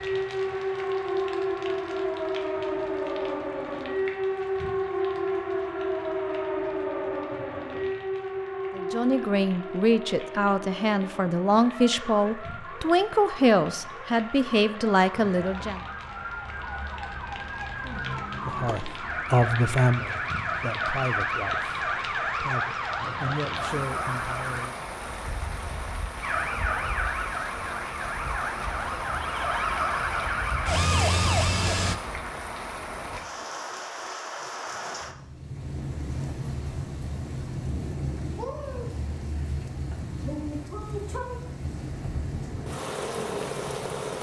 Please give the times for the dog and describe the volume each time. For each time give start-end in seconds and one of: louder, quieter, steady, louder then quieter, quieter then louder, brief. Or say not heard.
not heard.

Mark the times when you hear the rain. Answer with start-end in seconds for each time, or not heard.
0.0-44.1.